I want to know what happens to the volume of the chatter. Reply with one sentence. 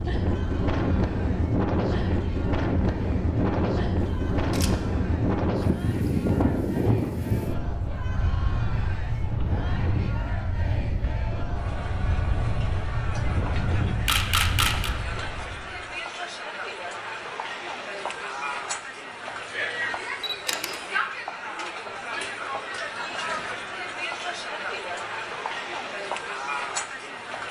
The loudness of the chatter goes up.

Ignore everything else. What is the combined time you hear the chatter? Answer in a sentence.
You can hear the chatter for 27 seconds altogether.